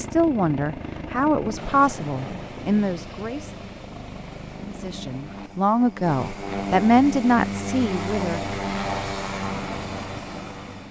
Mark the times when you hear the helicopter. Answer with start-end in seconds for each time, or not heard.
0.0-10.8.